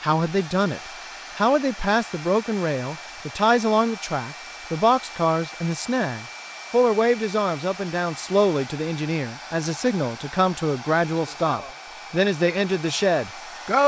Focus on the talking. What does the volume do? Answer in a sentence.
The volume of the talking stays about the same.